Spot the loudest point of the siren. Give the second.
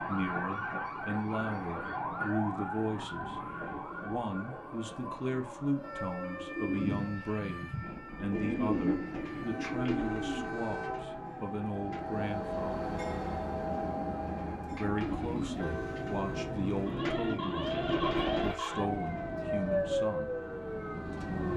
20 s.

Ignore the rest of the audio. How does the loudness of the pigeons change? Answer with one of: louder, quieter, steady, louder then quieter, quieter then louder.
quieter then louder.